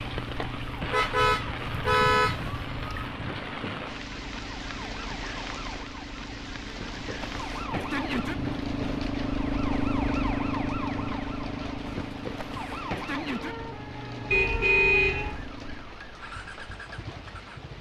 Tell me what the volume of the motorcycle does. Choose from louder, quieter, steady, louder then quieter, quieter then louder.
louder then quieter.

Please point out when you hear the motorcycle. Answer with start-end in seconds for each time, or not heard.
0.1-17.7.